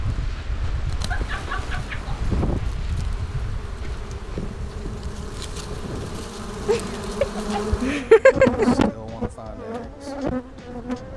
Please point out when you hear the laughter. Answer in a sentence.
You can hear the laughter from 6.7 to 8.7 s.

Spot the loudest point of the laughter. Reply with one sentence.
The loudest moment of the laughter is at 8 seconds.